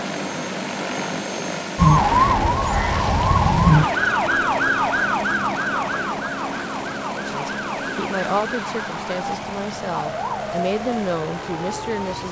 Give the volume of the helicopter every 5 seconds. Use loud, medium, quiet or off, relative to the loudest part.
loud, loud, medium.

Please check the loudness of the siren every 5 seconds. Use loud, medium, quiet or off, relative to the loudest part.
loud, medium, quiet.